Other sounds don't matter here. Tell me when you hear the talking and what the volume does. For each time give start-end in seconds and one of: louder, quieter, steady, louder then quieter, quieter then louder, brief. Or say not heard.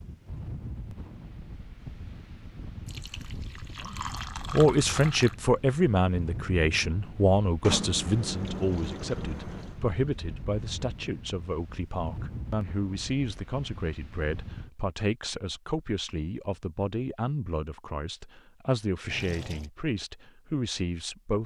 3.9-21.4 quieter.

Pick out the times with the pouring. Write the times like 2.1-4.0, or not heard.
2.9-5.3, 7.6-9.8, 19.1-19.7.